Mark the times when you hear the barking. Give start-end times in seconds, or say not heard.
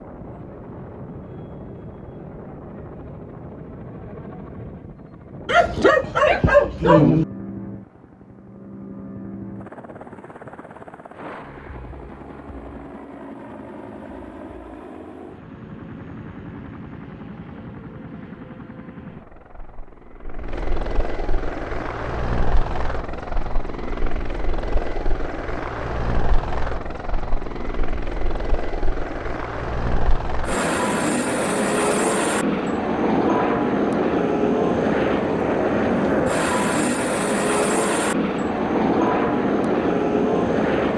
5.5-7.2.